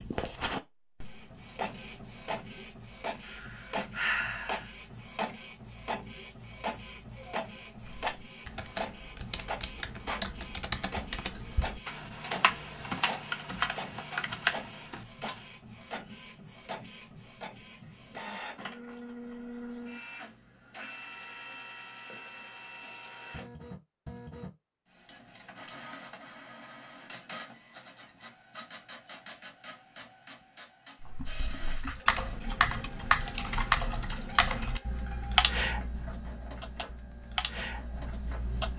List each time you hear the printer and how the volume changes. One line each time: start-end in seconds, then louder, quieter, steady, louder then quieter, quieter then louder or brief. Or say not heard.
0.0-38.7 quieter.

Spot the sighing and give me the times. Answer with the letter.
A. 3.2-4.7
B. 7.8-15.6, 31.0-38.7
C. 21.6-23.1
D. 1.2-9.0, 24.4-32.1
A.